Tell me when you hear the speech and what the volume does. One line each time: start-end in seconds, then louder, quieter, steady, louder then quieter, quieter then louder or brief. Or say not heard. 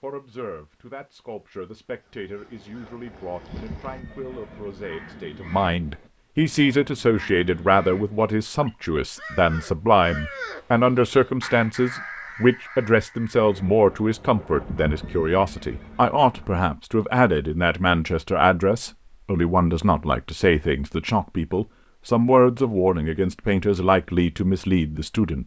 0.0-25.4 louder.